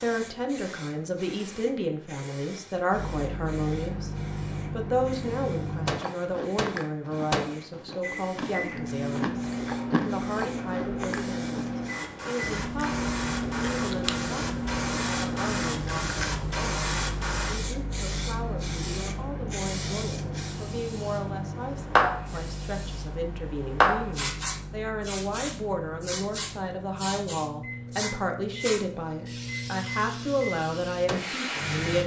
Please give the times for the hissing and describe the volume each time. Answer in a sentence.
The hissing can be heard from 0.0 to 32.0 s, getting louder then quieter.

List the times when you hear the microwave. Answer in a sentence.
You can hear the microwave from 2.9 to 32.0 s.